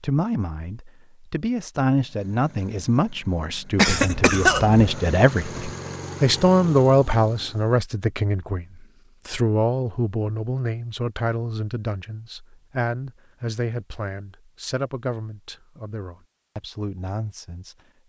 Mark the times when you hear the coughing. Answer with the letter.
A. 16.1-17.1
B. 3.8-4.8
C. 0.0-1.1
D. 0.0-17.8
B.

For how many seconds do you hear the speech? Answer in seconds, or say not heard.
18 s.